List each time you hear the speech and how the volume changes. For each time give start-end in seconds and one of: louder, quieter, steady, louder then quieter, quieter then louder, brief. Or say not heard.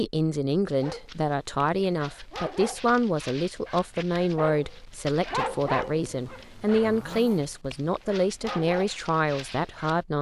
0.0-10.1 steady.